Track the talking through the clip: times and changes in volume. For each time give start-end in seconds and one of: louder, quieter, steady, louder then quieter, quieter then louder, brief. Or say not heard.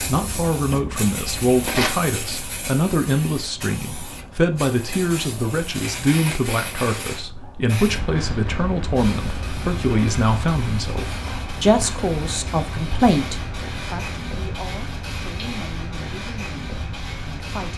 0.1-17.7 quieter.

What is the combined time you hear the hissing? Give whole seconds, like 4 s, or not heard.
18 s.